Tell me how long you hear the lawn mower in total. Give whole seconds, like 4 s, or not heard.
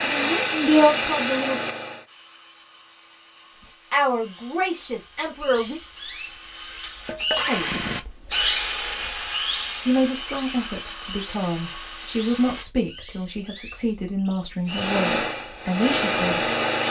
4 s.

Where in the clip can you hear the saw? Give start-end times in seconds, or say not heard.
2.0-12.7.